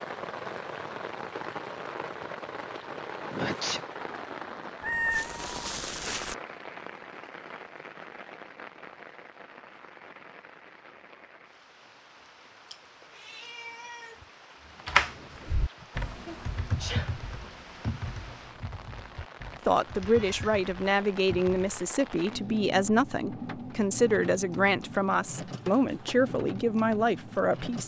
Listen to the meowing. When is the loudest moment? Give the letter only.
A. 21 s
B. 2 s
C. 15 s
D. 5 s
D.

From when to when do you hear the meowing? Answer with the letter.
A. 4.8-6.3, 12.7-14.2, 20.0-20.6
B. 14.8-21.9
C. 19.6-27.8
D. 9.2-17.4
A.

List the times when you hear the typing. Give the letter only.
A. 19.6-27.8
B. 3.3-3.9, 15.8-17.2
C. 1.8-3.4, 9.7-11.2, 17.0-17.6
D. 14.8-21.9
D.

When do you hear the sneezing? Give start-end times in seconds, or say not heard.
3.3-3.9, 15.8-17.2.